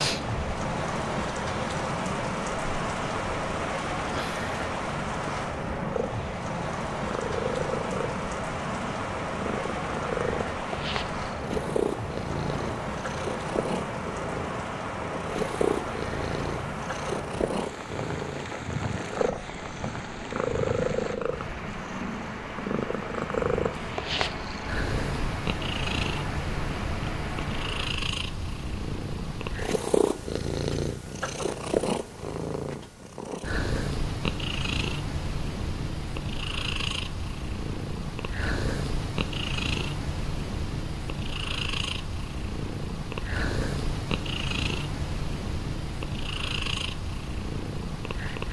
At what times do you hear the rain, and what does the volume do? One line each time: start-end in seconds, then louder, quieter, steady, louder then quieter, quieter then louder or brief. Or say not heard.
0.0-27.9 quieter.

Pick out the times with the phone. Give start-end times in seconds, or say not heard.
not heard.